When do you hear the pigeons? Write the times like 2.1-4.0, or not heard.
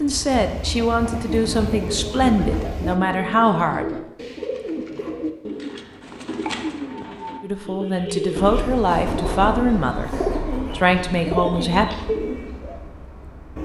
1.2-12.8.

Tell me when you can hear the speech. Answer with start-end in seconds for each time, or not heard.
0.0-4.0, 7.4-10.1, 10.7-11.8.